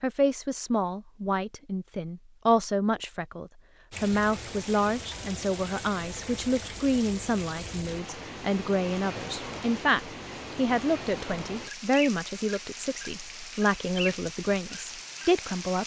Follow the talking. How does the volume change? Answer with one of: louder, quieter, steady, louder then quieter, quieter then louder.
steady.